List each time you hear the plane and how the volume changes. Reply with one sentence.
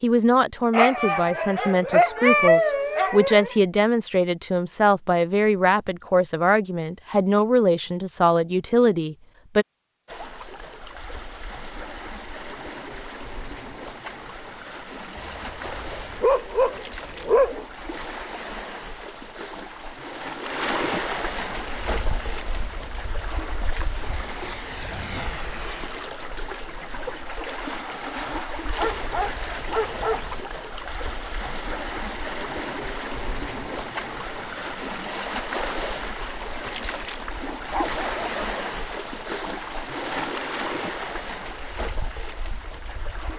You can hear the plane from 21.4 to 25.9 s, getting louder.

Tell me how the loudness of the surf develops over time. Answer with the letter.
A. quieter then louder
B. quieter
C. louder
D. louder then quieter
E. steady
C.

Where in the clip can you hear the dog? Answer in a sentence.
The dog can be heard from 0.7 to 3.5 s, from 15.2 to 17.6 s, from 28.8 to 30.4 s and from 37.5 to 38.6 s.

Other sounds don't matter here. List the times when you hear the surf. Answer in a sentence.
You can hear the surf from 10.1 to 43.3 s.